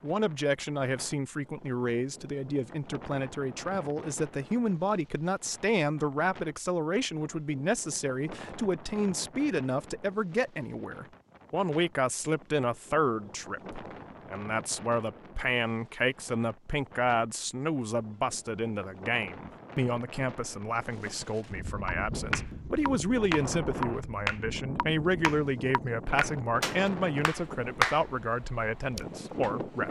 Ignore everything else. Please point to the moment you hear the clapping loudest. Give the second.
28 s.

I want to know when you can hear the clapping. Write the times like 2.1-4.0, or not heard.
21.9-29.5.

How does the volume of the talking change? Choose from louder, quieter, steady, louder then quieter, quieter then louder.
steady.